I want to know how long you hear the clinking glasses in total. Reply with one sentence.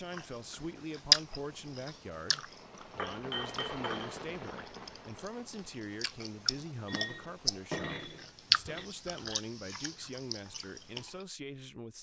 You can hear the clinking glasses for 3 seconds altogether.